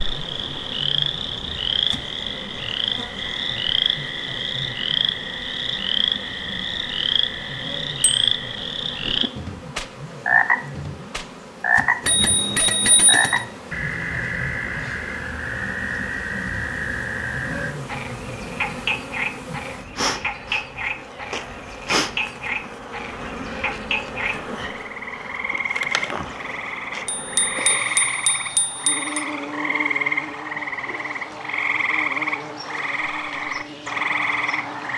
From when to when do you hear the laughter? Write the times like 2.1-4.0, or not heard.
not heard.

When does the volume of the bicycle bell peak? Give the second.
13 s.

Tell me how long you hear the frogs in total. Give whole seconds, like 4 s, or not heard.
35 s.